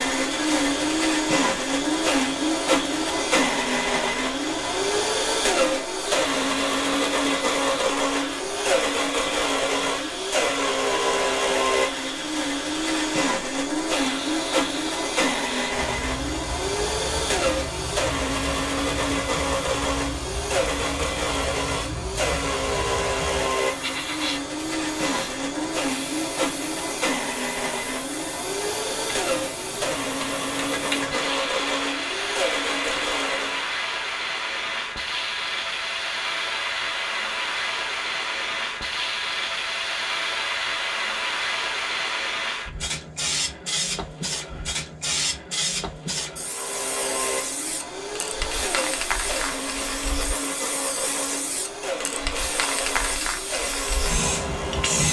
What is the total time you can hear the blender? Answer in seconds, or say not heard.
42 s.